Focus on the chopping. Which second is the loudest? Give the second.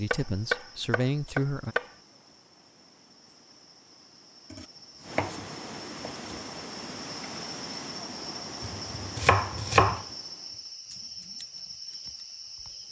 10 s.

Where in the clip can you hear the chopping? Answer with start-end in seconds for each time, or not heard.
0.1-1.9, 4.5-6.7, 8.6-10.1.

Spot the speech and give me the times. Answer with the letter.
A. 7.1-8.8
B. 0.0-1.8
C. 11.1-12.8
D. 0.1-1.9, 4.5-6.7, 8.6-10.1
B.